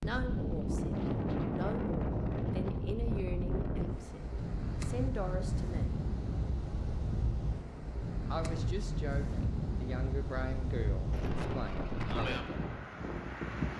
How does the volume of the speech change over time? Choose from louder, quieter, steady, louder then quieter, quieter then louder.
steady.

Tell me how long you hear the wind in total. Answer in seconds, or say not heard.
14 s.